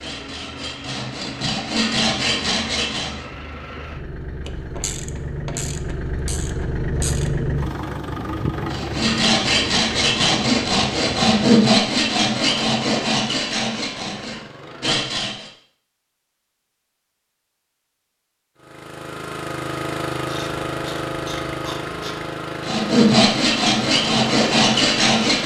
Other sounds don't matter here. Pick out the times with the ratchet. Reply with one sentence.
You can hear the ratchet from 4.5 to 7.4 s and from 20.2 to 22.3 s.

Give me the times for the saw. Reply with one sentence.
You can hear the saw from 0.0 to 3.2 s, from 8.7 to 15.5 s and from 22.6 to 25.4 s.